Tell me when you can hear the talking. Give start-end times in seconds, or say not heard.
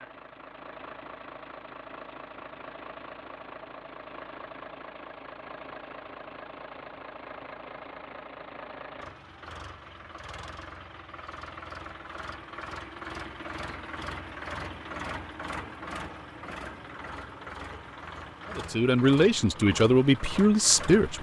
18.5-21.1.